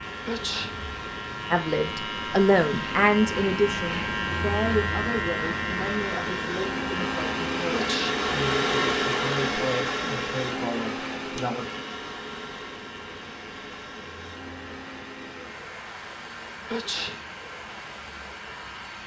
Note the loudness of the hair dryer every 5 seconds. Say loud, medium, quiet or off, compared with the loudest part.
quiet, loud, medium, quiet.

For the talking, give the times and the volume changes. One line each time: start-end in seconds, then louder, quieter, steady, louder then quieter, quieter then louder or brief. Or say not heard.
1.5-11.7 quieter.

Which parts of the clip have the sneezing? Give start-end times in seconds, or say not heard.
0.2-0.8, 7.7-8.2, 16.6-17.2.